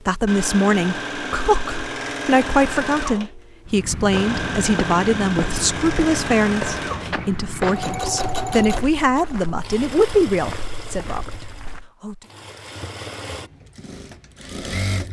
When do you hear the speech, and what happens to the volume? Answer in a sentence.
You can hear the speech from 0.1 to 12.2 s, at a steady volume.